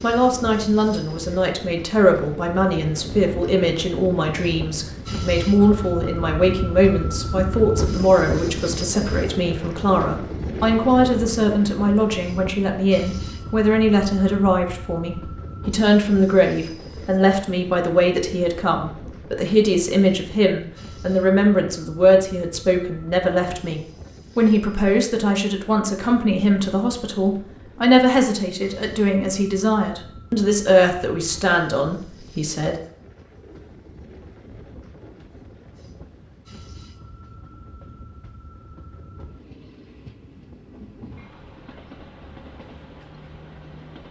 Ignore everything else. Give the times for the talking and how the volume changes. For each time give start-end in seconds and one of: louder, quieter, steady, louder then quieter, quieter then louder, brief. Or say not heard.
0.0-32.8 steady.